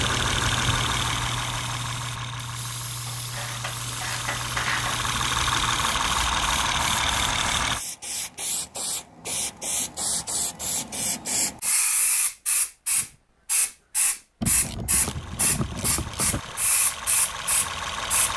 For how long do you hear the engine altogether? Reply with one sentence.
The engine can be heard for 11 seconds in total.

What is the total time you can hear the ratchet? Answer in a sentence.
You can hear the ratchet for 4 seconds altogether.